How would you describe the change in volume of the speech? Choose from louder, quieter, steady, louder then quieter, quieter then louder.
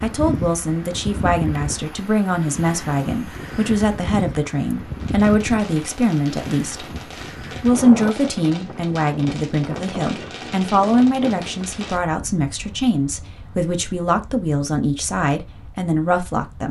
steady.